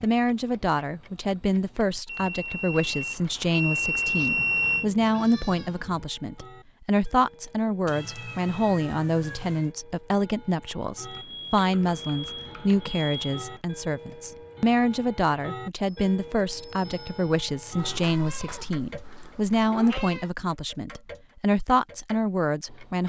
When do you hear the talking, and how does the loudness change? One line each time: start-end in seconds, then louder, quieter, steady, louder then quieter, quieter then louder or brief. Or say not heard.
0.0-23.0 steady.